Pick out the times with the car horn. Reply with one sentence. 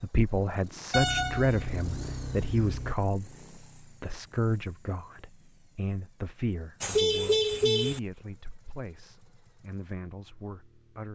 You can hear the car horn from 0.9 to 3.0 s and from 6.8 to 8.0 s.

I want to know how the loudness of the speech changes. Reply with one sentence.
The loudness of the speech goes down.